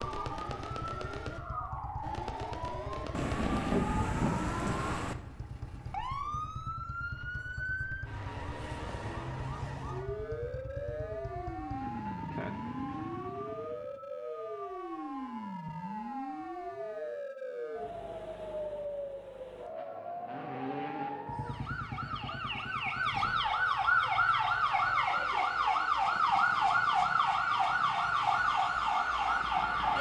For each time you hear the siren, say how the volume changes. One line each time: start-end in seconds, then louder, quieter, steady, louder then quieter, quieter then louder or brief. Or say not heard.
0.0-29.9 louder.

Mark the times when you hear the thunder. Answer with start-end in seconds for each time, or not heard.
3.1-5.2.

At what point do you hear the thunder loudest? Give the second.
4 s.